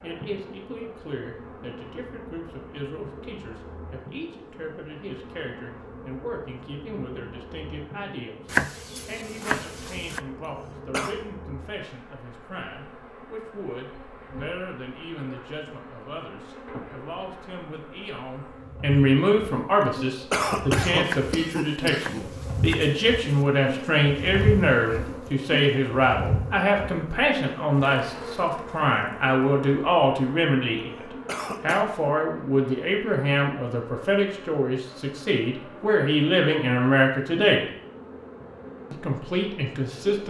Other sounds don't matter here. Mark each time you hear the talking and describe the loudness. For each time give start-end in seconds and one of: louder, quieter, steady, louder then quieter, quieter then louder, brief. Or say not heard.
0.0-37.6 louder
38.9-40.2 brief.